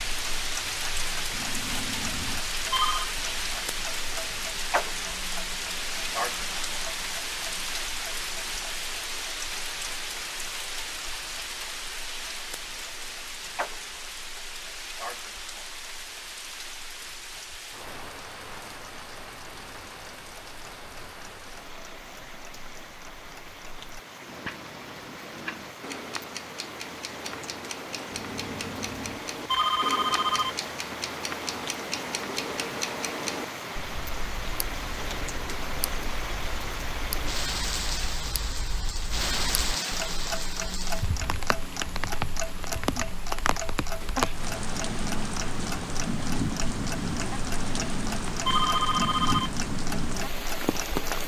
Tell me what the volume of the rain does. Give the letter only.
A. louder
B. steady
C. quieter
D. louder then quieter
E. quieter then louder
E.